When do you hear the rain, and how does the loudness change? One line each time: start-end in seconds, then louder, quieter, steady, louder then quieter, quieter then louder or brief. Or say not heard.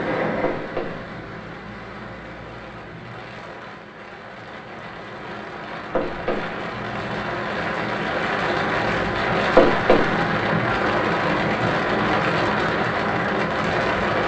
0.0-14.2 louder.